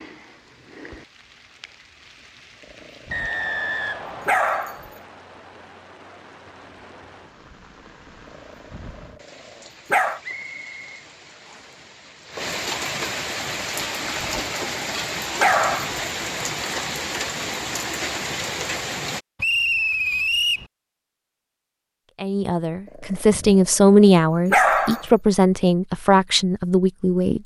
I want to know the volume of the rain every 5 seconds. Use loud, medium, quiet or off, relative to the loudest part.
quiet, quiet, loud, loud, off, off.